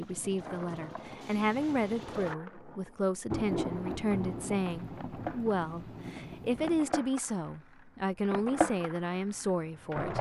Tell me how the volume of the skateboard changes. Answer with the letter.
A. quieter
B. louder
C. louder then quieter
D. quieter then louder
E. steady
B.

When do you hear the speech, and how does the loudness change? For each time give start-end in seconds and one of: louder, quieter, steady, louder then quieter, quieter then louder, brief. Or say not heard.
0.0-10.1 steady.